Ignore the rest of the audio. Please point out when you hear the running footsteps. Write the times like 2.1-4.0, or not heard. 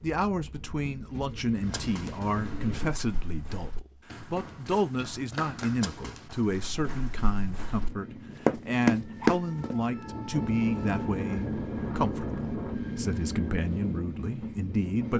1.6-9.8.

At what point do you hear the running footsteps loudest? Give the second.
9 s.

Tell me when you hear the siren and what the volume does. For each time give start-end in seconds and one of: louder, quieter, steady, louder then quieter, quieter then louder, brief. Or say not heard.
not heard.